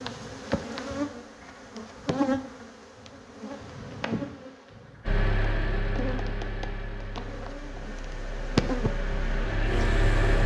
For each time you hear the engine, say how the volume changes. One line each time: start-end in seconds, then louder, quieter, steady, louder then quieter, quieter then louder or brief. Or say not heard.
5.0-10.4 quieter then louder.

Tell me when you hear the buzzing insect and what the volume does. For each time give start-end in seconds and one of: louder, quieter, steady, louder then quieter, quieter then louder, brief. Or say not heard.
0.0-10.4 quieter then louder.